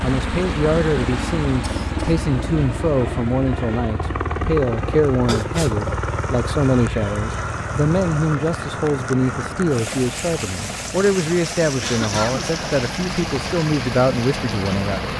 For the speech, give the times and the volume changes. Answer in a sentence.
The speech can be heard from 0.0 to 15.1 s, at a steady volume.